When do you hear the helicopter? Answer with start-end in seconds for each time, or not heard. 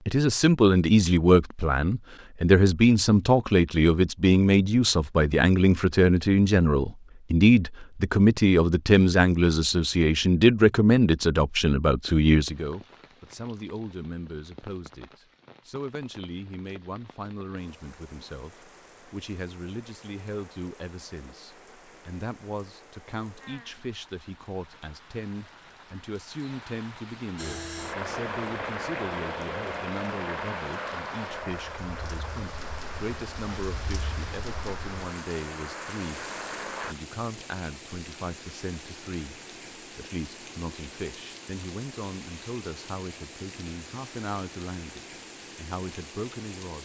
27.4-37.0.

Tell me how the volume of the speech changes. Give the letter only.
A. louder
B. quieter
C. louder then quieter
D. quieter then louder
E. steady
B.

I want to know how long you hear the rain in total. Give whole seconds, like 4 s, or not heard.
34 s.